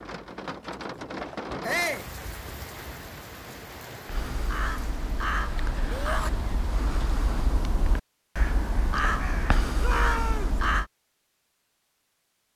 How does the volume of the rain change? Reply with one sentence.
The volume of the rain goes down.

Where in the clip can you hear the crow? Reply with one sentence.
You can hear the crow from 4.0 to 10.8 s.